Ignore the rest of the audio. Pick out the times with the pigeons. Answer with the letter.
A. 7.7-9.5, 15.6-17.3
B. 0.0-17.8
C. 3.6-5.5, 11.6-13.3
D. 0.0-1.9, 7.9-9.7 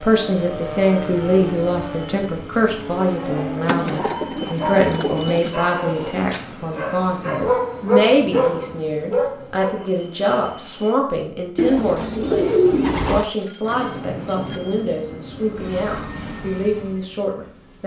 C.